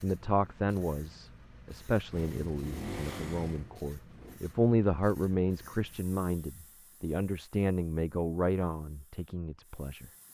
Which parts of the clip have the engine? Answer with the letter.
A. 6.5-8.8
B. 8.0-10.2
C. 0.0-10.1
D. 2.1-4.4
D.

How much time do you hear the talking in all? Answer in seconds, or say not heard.
10 s.